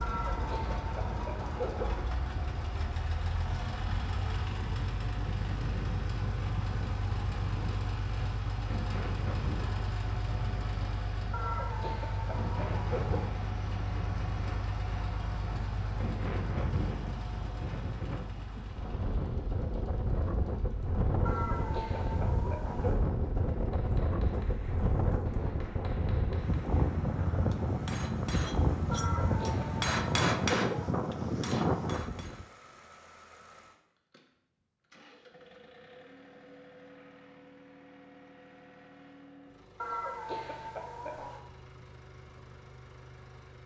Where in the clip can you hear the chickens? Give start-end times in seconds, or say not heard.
0.0-2.0, 11.3-13.3, 21.2-23.1, 28.9-30.9, 39.8-41.4.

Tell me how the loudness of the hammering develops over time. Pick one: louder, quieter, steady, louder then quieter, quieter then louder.
louder.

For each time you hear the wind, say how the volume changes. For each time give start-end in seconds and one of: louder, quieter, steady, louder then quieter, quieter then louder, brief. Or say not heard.
0.0-32.5 louder.